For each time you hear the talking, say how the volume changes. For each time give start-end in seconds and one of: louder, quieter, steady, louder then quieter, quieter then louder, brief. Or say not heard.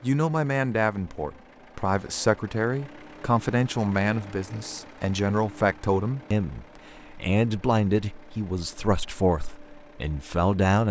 0.0-10.8 steady.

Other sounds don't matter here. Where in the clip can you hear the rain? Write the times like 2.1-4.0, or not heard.
not heard.